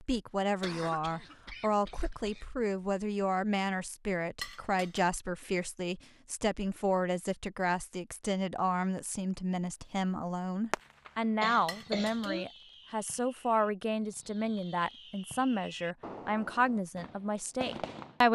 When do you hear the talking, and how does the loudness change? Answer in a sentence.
The talking can be heard from 0.0 to 18.3 s, at a steady volume.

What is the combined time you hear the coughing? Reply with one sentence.
You can hear the coughing for 3 seconds altogether.